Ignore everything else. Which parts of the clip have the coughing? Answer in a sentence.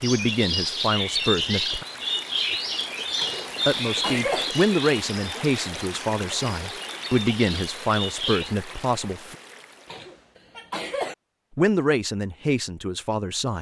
You can hear the coughing from 3.2 to 4.5 s and from 9.8 to 11.2 s.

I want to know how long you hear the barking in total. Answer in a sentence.
You can't hear the barking here.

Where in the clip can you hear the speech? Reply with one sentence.
The speech can be heard from 0.0 to 1.9 s, from 3.6 to 9.3 s and from 11.6 to 13.5 s.